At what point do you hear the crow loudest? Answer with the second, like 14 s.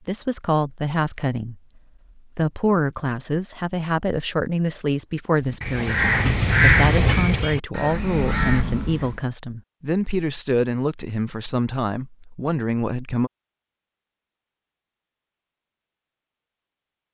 7 s.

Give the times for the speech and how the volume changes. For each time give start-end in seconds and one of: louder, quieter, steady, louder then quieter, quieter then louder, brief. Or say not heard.
0.1-13.3 steady.